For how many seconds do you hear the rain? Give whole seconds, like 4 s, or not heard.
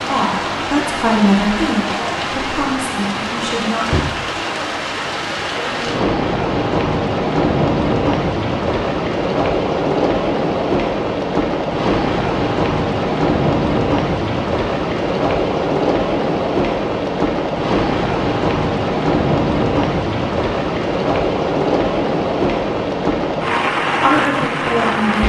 25 s.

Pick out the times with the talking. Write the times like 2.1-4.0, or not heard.
0.1-4.0, 24.1-25.2.